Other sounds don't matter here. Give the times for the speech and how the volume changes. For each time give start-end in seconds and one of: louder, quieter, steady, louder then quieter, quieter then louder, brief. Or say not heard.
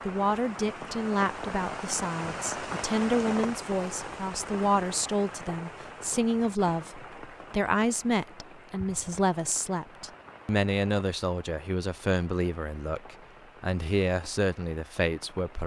0.1-15.6 steady.